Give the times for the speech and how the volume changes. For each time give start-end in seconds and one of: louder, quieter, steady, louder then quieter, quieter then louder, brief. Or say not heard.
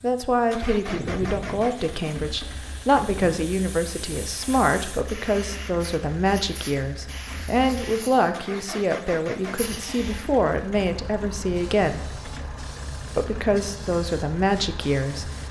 0.0-12.1 steady
13.2-15.3 brief.